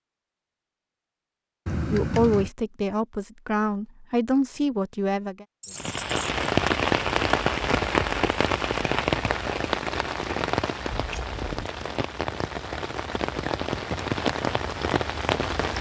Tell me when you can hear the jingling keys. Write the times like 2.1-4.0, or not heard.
1.6-2.5, 5.6-6.2, 10.9-11.7.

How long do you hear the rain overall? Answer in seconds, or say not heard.
10 s.